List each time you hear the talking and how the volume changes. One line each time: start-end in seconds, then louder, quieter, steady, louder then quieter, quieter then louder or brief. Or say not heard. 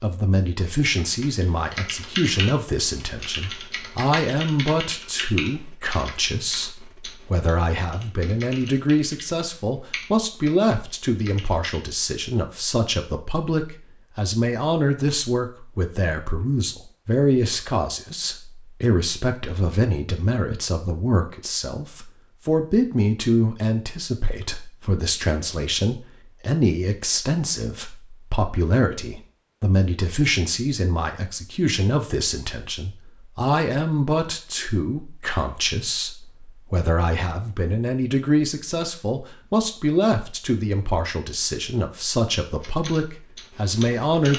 0.0-44.3 steady.